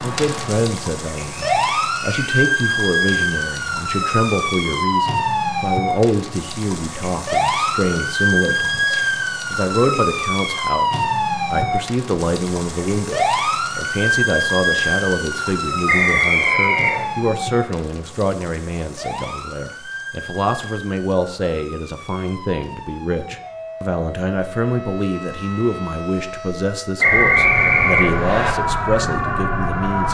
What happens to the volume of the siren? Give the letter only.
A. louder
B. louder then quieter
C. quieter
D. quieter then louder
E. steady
D.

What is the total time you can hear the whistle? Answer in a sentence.
You can hear the whistle for 4 seconds altogether.